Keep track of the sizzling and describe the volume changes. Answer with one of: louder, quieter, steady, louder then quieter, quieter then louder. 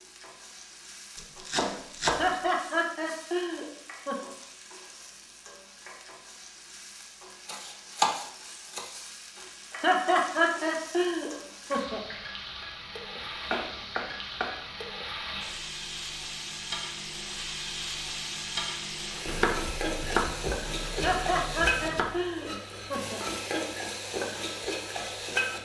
louder.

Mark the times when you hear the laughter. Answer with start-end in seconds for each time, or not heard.
2.1-4.2, 9.8-12.0, 20.9-23.2.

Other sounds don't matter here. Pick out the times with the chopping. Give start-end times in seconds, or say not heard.
1.1-2.5, 7.5-8.9, 13.2-14.6, 19.2-22.1.